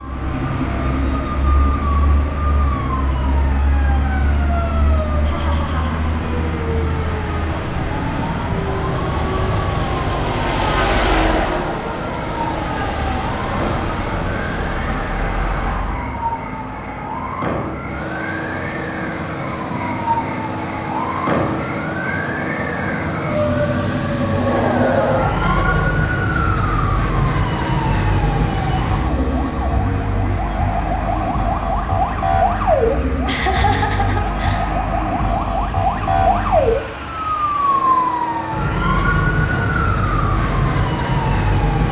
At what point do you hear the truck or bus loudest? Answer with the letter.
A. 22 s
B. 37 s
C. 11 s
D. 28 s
C.